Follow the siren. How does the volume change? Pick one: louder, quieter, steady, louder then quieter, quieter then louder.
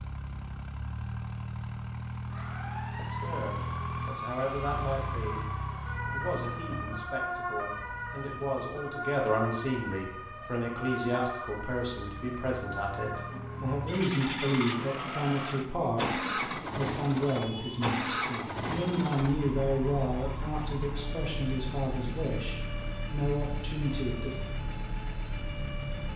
quieter.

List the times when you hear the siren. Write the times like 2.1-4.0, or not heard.
2.2-26.1.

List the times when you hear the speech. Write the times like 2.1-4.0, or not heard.
3.0-5.5, 6.1-24.4.